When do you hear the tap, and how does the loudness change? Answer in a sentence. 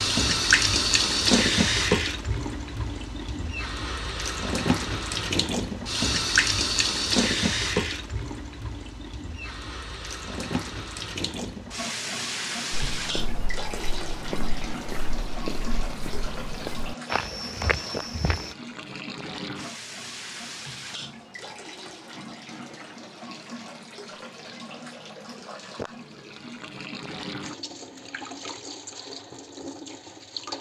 The tap can be heard from 0.0 to 30.5 s, getting quieter.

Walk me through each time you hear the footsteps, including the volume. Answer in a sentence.
The footsteps can be heard from 12.7 to 18.5 s, getting louder.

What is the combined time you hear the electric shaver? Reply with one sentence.
The electric shaver can't be heard in this clip.